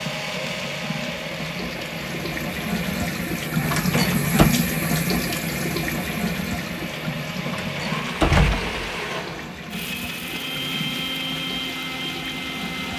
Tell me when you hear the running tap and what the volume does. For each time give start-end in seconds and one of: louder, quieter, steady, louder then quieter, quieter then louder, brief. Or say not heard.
0.0-12.9 louder then quieter.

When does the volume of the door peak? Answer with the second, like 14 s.
8 s.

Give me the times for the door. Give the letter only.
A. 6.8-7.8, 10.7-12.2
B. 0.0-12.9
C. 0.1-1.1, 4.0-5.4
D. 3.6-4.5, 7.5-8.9
D.